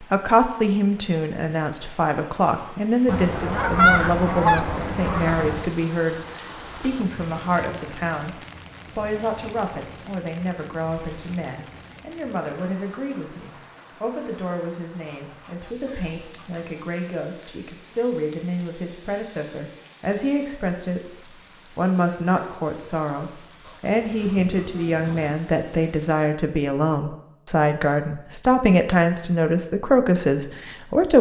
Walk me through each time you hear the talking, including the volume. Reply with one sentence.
The talking can be heard from 0.0 to 31.1 s, getting quieter then louder.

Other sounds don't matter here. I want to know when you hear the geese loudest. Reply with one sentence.
The loudest moment of the geese is at 4 seconds.